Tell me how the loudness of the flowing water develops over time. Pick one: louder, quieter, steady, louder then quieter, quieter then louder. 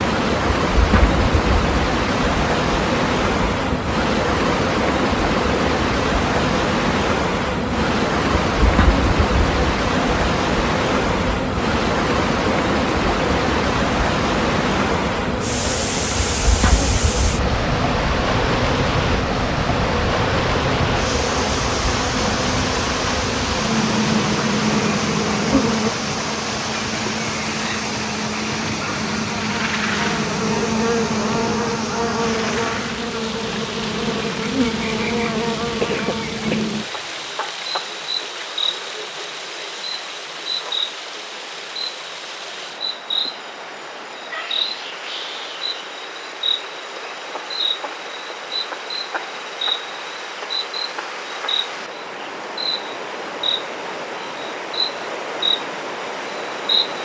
quieter.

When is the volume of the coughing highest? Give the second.
36 s.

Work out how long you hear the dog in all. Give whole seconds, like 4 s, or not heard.
not heard.